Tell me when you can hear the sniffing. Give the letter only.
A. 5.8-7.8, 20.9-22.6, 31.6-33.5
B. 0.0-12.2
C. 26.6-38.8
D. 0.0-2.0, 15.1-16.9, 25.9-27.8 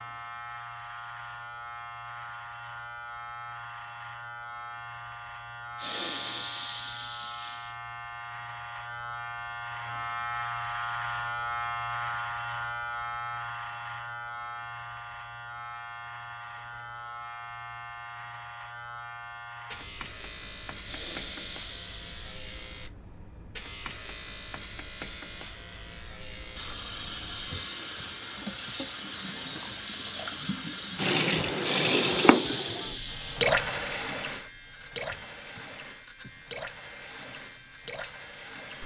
A.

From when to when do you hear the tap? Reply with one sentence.
The tap can be heard from 26.6 to 38.8 s.